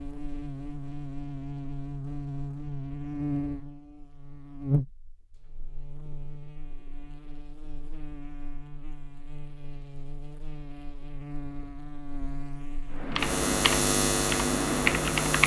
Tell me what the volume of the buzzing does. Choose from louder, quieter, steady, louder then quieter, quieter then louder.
quieter then louder.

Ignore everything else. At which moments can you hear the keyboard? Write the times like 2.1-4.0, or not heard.
13.0-15.4.